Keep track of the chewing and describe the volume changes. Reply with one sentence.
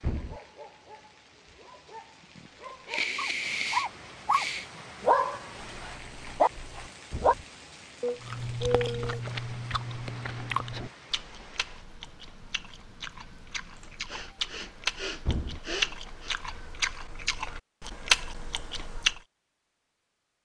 The volume of the chewing goes down, then up.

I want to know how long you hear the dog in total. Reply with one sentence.
You can hear the dog for 7 seconds altogether.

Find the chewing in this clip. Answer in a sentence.
The chewing can be heard from 8.2 to 19.2 s.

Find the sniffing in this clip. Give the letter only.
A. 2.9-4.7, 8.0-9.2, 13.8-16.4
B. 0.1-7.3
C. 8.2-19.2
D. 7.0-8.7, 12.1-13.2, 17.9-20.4
A.